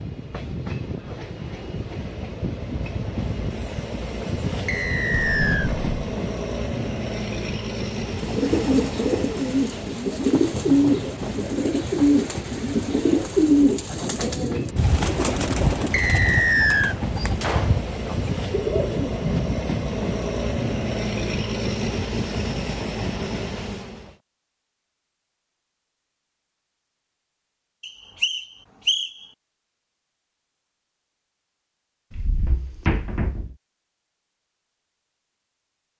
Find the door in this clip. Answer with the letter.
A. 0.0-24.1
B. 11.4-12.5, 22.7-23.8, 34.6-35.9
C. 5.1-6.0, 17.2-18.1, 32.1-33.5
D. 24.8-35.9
C.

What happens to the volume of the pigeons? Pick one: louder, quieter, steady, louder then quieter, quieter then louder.
quieter.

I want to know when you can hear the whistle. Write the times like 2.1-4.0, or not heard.
4.7-5.7, 15.9-16.9, 27.8-29.1.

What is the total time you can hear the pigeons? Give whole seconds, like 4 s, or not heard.
11 s.